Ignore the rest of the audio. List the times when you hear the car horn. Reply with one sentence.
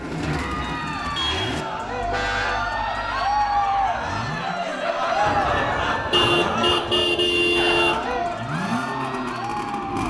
You can hear the car horn from 1.1 to 2.6 s and from 5.2 to 8.0 s.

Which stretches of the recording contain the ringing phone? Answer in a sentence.
The ringing phone can't be heard in this clip.